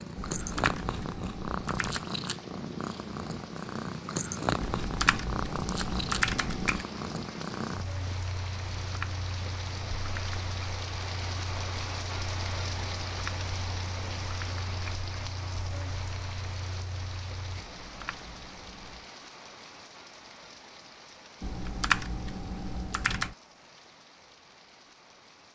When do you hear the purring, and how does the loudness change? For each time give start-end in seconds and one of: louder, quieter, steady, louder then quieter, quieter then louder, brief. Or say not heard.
0.0-17.6 quieter.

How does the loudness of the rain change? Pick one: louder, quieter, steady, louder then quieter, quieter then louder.
louder then quieter.